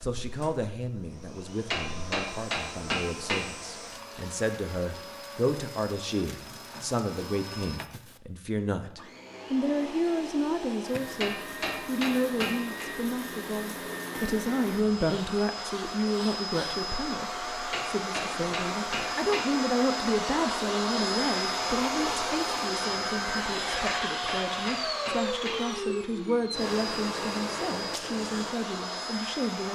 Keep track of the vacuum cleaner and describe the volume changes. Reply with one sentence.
The loudness of the vacuum cleaner goes up.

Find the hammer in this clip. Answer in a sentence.
You can hear the hammer from 1.7 to 3.5 s, from 11.2 to 12.8 s, from 17.7 to 19.4 s and from 23.9 to 25.6 s.